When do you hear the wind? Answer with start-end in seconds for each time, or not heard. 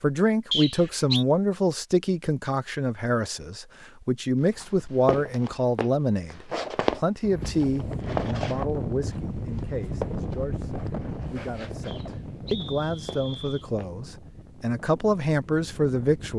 7.2-16.3.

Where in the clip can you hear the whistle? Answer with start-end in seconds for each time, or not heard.
0.5-1.2, 11.8-13.7.